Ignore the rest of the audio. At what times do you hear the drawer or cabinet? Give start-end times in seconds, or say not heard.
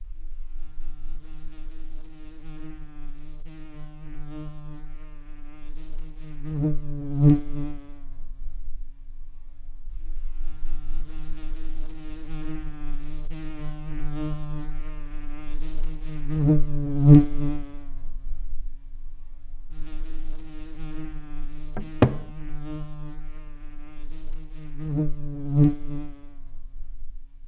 21.8-22.2.